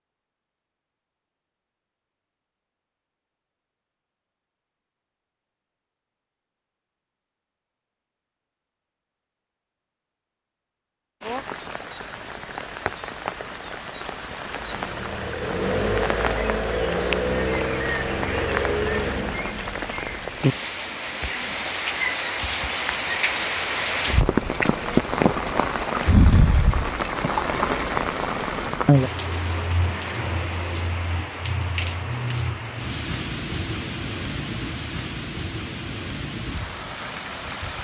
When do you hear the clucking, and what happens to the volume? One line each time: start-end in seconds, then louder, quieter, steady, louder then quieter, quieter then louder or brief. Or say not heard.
not heard.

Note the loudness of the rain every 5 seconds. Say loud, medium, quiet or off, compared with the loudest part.
off, off, medium, medium, loud, loud, medium, medium.